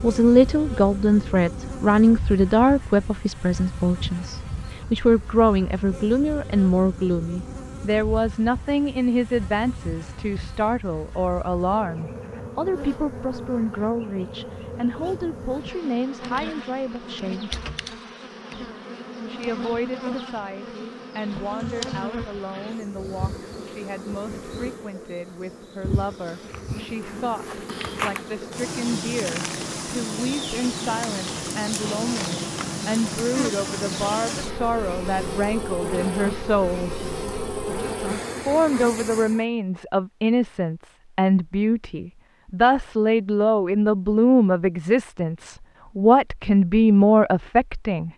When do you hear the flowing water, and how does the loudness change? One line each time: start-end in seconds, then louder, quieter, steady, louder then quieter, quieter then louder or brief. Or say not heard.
not heard.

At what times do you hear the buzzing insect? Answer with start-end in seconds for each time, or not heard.
0.0-39.5.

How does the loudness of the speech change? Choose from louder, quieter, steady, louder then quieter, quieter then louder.
quieter then louder.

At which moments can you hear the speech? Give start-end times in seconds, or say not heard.
0.0-17.6, 19.2-37.0, 38.5-48.1.